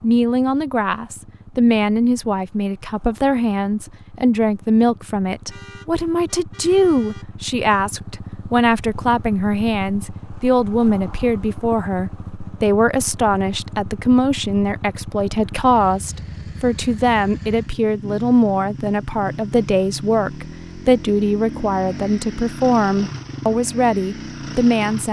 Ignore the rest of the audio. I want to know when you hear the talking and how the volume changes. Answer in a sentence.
You can hear the talking from 0.0 to 25.0 s, at a steady volume.